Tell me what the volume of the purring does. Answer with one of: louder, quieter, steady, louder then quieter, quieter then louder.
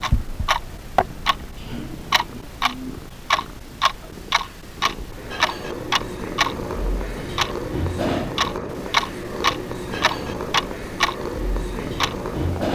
louder.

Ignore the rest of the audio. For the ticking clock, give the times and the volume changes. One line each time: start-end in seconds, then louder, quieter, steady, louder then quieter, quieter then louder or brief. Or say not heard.
0.0-12.7 steady.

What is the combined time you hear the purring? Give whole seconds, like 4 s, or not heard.
13 s.